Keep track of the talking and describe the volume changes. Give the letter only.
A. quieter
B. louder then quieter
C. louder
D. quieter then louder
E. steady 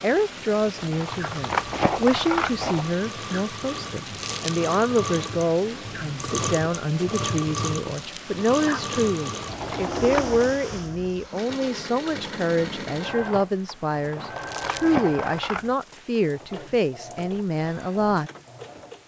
E.